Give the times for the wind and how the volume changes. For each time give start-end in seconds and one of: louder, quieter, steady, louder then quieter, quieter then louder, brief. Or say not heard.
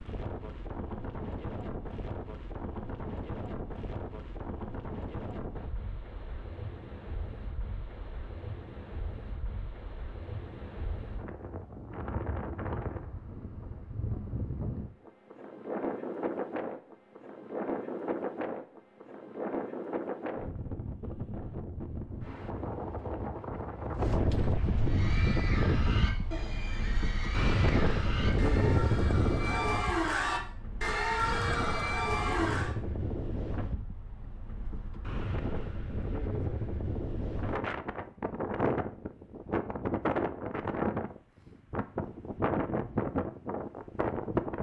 0.0-44.5 louder.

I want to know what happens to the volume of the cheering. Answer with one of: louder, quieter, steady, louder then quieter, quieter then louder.
louder.